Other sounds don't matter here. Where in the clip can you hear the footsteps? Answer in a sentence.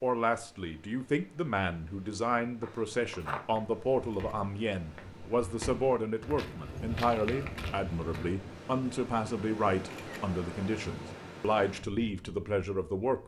The footsteps can be heard from 2.6 to 8.3 s.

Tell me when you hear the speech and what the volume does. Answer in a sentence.
The speech can be heard from 0.0 to 13.2 s, at a steady volume.